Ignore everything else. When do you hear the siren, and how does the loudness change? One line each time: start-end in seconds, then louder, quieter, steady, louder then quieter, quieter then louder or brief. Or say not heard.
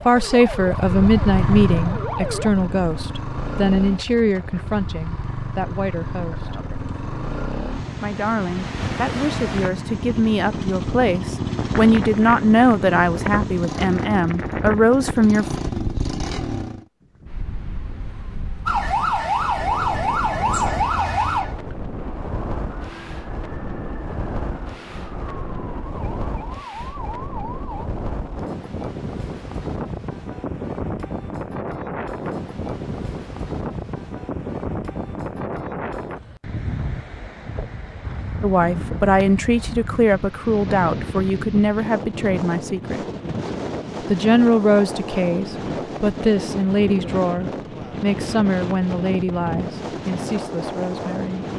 0.0-2.5 brief
18.6-27.9 quieter.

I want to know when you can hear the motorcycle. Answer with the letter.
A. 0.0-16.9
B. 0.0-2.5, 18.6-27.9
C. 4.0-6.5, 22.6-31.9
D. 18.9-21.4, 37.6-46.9
A.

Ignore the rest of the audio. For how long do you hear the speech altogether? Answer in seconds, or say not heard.
26 s.